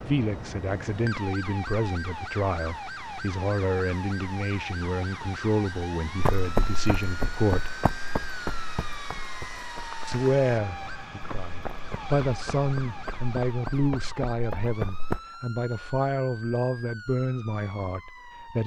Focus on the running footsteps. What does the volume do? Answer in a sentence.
The loudness of the running footsteps goes down, then up.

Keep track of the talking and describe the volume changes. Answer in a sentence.
The loudness of the talking stays about the same.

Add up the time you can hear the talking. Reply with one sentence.
You can hear the talking for 16 seconds altogether.